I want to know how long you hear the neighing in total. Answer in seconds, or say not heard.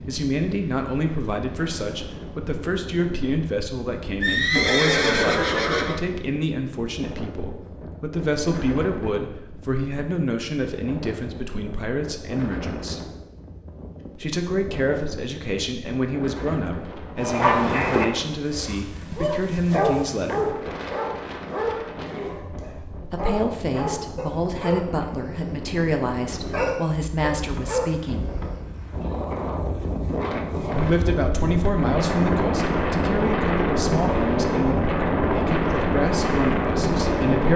2 s.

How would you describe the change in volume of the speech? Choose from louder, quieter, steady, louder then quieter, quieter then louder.
steady.